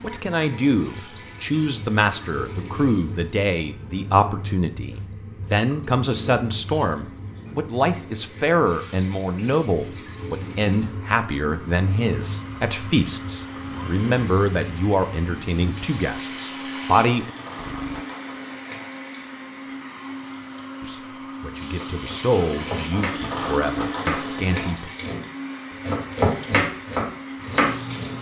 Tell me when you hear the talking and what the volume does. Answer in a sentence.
You can hear the talking from 0.0 to 17.3 s, at a steady volume; and from 20.8 to 24.9 s, getting louder then quieter.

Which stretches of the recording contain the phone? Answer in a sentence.
You can hear the phone from 17.6 to 18.1 s.